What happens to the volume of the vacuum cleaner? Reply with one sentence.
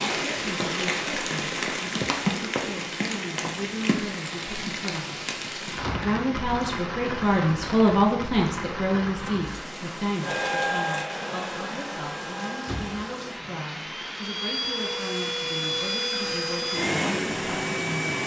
The loudness of the vacuum cleaner goes down, then up.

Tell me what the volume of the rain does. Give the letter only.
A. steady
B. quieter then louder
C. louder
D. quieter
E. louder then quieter
D.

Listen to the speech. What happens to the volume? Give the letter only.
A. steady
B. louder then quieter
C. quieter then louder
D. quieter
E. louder
B.